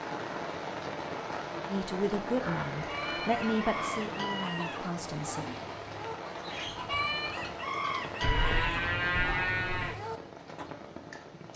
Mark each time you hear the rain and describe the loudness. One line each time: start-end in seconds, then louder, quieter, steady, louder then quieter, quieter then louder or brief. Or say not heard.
0.0-11.5 quieter.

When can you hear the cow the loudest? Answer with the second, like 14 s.
9 s.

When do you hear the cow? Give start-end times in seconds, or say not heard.
2.4-3.8, 8.2-10.0.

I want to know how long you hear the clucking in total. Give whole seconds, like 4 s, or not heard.
8 s.